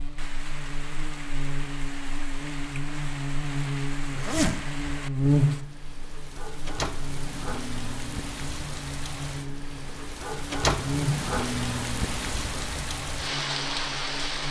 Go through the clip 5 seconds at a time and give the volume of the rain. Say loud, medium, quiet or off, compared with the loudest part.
medium, medium, loud.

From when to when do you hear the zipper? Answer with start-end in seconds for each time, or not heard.
4.1-4.6.